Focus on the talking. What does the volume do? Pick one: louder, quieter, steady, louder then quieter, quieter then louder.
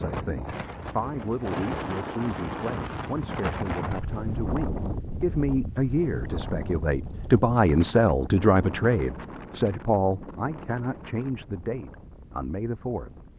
louder then quieter.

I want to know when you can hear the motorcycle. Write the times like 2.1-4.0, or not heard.
not heard.